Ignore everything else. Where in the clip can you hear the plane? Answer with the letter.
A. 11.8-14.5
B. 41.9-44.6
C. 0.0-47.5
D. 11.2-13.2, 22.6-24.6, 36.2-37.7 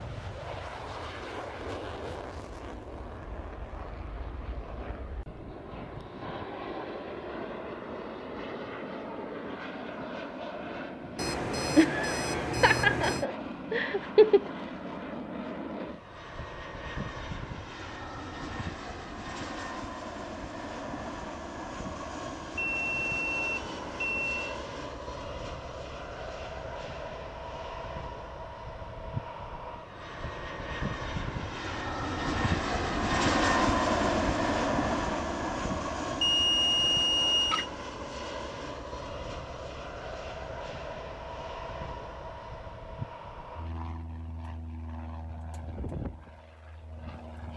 C.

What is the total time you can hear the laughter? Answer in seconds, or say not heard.
3 s.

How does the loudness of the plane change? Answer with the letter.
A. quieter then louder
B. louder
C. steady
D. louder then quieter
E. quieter
D.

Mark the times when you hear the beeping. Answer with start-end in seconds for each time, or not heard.
11.2-13.2, 22.6-24.6, 36.2-37.7.